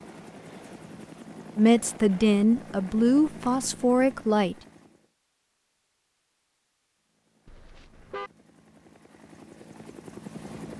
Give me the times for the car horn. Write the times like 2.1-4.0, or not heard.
7.5-8.3.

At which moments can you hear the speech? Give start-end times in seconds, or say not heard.
1.6-4.5.